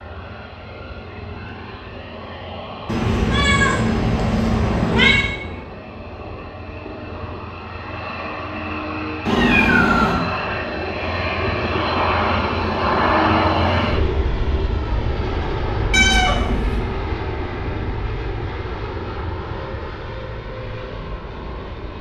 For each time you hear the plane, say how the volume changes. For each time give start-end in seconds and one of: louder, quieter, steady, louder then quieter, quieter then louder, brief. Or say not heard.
0.0-21.9 louder then quieter.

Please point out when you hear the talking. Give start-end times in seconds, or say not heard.
not heard.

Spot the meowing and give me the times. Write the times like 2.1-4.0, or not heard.
2.9-5.3, 9.2-10.2, 15.9-16.9.